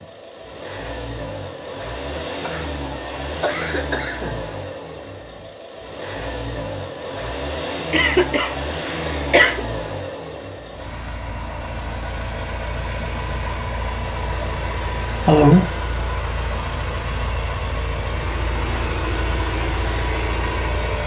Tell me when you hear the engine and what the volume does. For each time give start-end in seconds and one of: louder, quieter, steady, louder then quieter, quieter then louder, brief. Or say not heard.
0.0-21.0 steady.